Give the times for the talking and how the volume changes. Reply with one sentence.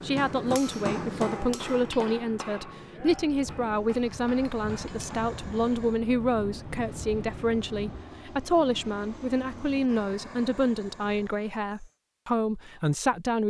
You can hear the talking from 0.0 to 13.4 s, at a steady volume.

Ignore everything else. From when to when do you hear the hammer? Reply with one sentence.
You can hear the hammer from 0.0 to 5.3 s.